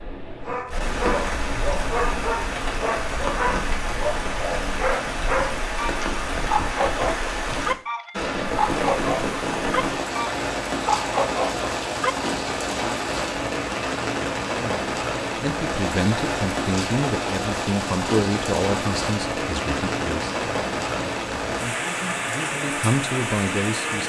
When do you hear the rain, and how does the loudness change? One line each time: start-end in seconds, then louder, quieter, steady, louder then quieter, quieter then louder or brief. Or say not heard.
0.0-24.0 steady.